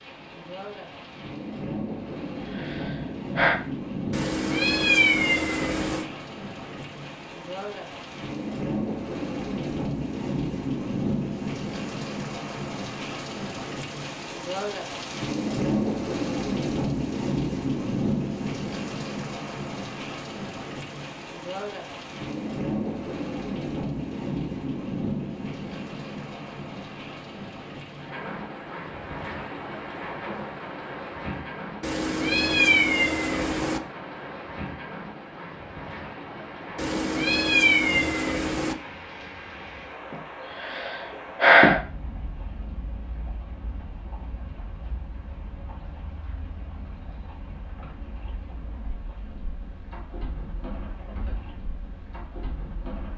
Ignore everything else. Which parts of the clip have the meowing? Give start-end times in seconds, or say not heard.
4.1-6.0, 31.8-33.8, 36.8-38.8.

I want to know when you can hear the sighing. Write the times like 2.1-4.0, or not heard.
2.0-3.6, 40.1-41.8.